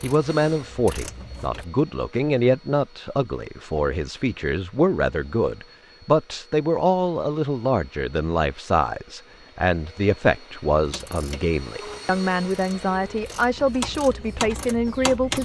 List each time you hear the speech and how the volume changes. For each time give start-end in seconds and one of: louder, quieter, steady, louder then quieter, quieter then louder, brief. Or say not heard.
0.0-15.3 steady.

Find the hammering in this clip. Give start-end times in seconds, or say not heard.
not heard.